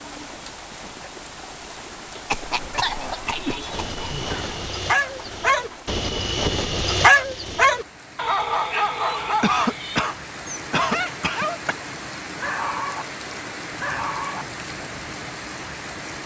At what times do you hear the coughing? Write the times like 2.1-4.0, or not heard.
2.2-4.3, 9.4-11.8.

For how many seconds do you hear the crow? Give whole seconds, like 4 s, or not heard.
not heard.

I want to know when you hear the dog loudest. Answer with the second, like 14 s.
7 s.